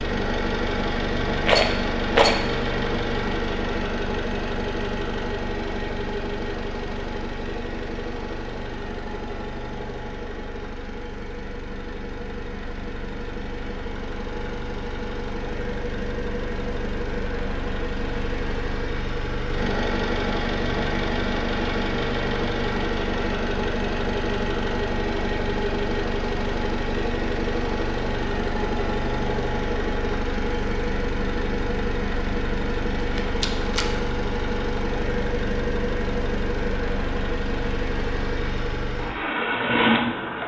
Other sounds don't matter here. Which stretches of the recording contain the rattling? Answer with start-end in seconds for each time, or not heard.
1.4-2.4, 33.1-33.9.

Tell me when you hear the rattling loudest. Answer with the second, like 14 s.
2 s.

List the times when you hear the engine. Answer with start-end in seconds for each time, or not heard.
0.0-40.4.